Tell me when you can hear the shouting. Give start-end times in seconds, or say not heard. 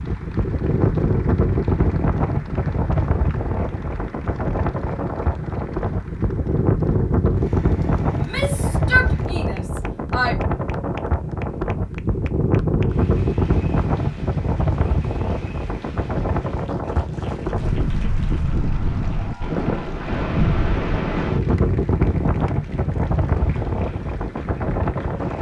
8.2-10.3.